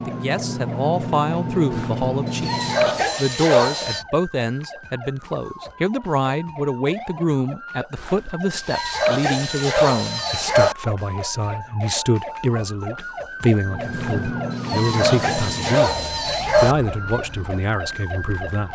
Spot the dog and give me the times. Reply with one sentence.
You can hear the dog from 1.7 to 4.0 s, from 8.0 to 10.8 s and from 13.9 to 16.8 s.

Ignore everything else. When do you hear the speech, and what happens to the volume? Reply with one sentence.
The speech can be heard from 0.0 to 18.7 s, at a steady volume.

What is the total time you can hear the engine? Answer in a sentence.
You can hear the engine for 8 seconds altogether.